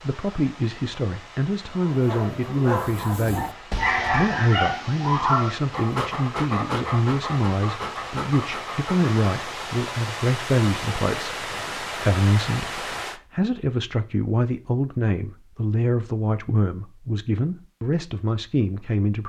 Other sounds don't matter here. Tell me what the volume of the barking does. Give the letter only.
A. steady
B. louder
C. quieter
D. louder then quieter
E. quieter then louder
D.